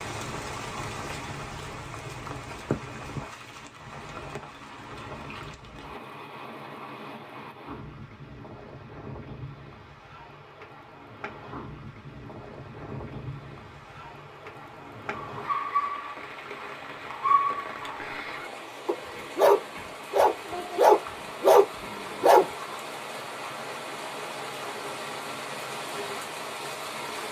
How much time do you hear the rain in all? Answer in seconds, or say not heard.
27 s.